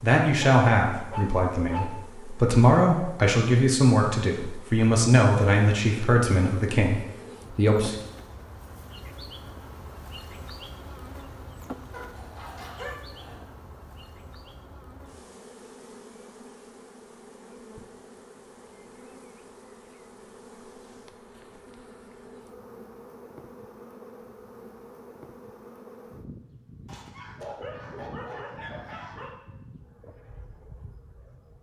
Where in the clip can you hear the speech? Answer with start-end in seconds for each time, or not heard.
0.0-8.0.